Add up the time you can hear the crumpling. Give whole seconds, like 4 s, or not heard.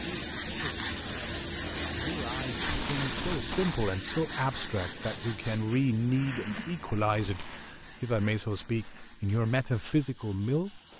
2 s.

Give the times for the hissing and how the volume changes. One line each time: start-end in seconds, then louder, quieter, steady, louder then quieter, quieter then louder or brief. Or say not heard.
0.0-10.9 quieter.